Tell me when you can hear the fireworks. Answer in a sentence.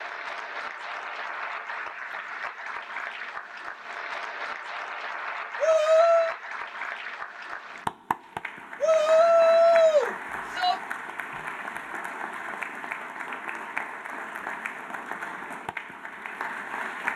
The fireworks can't be heard in this clip.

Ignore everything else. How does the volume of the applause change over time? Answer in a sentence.
The volume of the applause stays about the same.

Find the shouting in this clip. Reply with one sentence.
You can hear the shouting from 5.5 to 6.3 s and from 8.8 to 10.8 s.